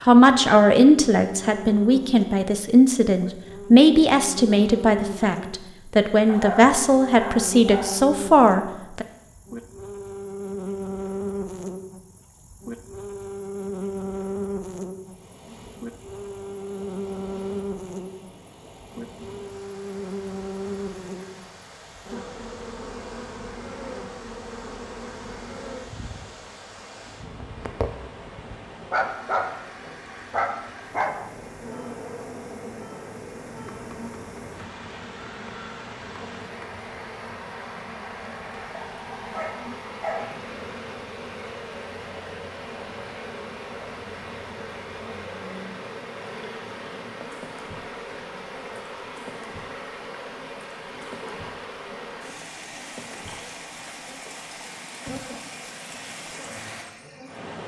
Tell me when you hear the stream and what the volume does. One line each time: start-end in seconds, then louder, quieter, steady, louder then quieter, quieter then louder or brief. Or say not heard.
14.9-57.6 louder.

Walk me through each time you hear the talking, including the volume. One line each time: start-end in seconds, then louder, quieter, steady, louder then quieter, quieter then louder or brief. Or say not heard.
0.0-9.1 steady.